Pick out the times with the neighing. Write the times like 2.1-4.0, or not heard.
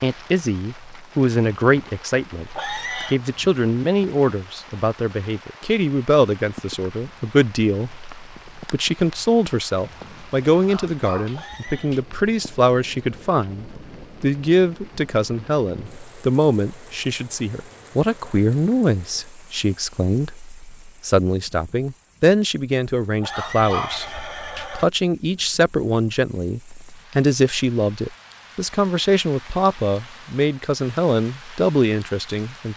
2.5-3.2, 11.3-11.9, 23.2-24.9.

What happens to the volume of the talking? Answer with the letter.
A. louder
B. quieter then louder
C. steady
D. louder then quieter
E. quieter
C.